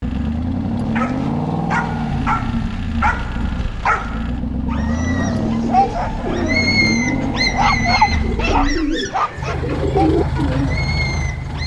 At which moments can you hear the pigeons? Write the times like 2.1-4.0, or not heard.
4.8-10.8.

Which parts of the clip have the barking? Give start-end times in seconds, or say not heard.
0.9-11.6.